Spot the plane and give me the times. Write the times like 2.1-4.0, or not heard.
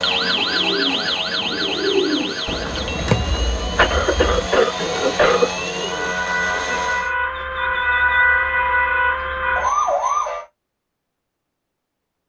0.0-7.2.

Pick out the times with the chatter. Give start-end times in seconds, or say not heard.
not heard.